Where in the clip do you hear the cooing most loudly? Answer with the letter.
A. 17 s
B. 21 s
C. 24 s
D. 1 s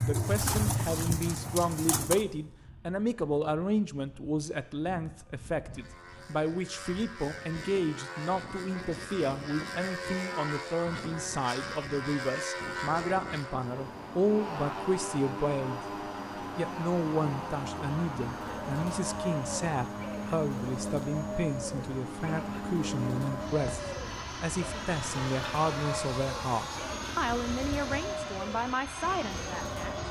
D.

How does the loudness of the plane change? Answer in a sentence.
The volume of the plane goes up.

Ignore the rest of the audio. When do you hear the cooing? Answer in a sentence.
You can hear the cooing from 0.0 to 2.2 s and from 18.2 to 30.0 s.